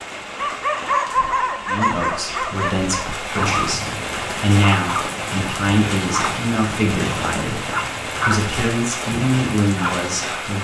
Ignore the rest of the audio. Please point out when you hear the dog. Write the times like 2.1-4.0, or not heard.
0.3-10.2.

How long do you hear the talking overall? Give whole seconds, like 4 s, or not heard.
9 s.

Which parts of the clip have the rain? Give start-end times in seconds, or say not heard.
0.0-10.5.